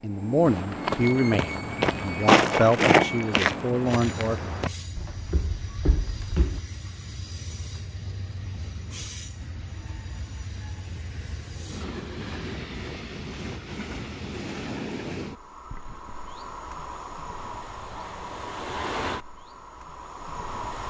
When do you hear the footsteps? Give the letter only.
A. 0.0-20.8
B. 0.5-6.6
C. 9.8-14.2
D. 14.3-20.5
B.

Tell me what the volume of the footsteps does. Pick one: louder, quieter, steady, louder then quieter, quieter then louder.
louder then quieter.